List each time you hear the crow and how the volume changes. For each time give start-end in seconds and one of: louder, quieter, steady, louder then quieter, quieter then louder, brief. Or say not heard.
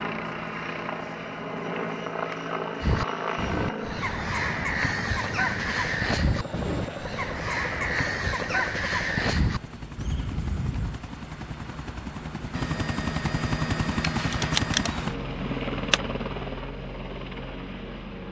2.8-11.0 steady.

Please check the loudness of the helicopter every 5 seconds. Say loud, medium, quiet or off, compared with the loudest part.
loud, medium, loud, loud.